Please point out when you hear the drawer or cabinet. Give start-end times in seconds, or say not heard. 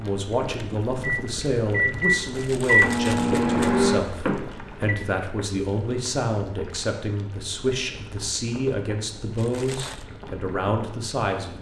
not heard.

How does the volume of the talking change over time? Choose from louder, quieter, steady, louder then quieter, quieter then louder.
steady.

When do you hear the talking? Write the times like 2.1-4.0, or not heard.
0.0-11.5.